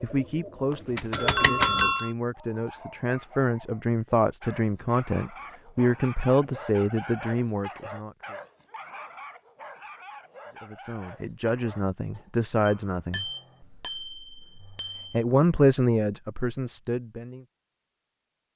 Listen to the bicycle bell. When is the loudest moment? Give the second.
2 s.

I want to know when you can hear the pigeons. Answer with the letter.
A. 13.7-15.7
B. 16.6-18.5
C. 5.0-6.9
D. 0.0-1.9
D.